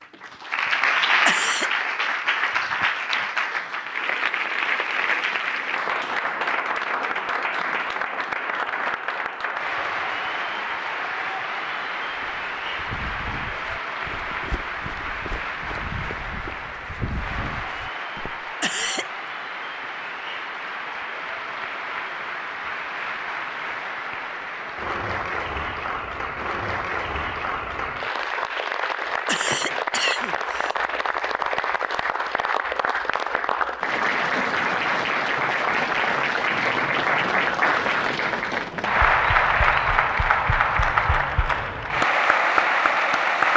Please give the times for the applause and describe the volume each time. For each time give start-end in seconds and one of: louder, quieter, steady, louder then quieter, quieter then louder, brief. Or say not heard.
0.0-43.5 quieter then louder.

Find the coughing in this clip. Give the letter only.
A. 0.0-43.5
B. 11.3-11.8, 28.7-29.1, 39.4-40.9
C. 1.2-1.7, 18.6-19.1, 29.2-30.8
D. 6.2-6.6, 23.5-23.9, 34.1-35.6
C.